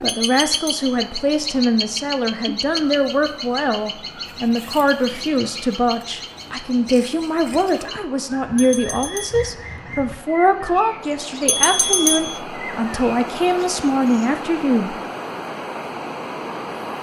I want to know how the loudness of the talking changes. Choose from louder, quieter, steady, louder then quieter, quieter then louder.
steady.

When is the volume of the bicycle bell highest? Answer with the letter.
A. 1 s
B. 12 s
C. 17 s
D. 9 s
B.